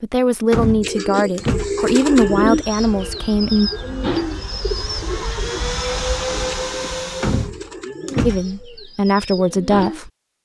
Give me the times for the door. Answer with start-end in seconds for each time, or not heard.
0.5-1.9, 7.2-8.6.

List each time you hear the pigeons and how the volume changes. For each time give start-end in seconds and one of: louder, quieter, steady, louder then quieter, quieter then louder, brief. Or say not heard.
0.8-10.0 quieter.